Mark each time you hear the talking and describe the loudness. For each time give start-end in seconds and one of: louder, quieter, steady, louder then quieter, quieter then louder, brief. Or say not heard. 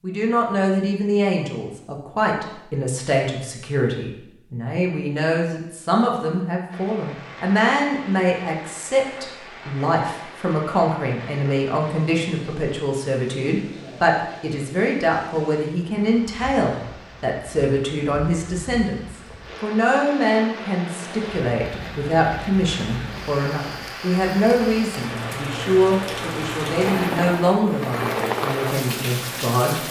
0.0-29.8 steady.